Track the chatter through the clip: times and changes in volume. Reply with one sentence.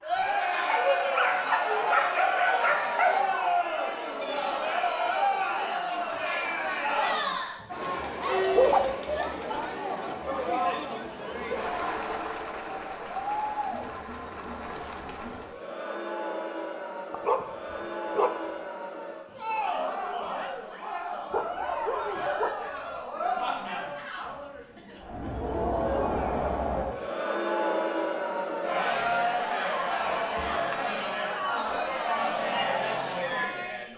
You can hear the chatter from 0.0 to 33.9 s, getting quieter then louder.